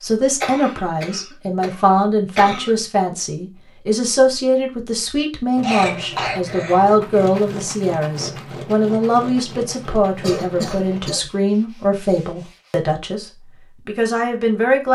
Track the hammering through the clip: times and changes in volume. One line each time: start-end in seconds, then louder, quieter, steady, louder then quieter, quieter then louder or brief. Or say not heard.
not heard.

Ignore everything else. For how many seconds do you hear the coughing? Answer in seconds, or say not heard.
5 s.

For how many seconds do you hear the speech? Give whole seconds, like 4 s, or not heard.
15 s.